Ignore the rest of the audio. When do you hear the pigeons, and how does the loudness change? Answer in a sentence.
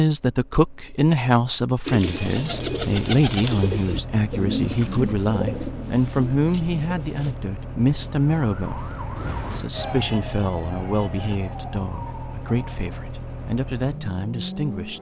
You can hear the pigeons from 1.9 to 7.3 s, getting quieter.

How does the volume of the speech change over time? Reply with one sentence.
The volume of the speech goes down.